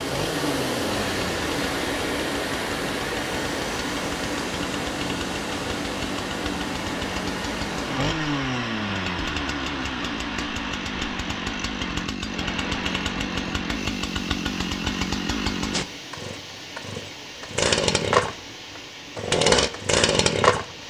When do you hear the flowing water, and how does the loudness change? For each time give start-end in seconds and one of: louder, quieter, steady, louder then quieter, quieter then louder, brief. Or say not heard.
0.0-20.8 quieter.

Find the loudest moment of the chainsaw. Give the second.
20 s.